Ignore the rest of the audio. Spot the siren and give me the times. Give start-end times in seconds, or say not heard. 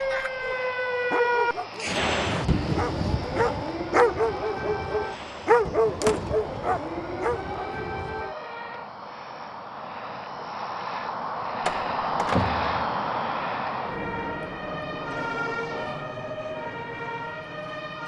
0.0-8.9, 13.7-18.0.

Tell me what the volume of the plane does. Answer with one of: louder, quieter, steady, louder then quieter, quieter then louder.
louder then quieter.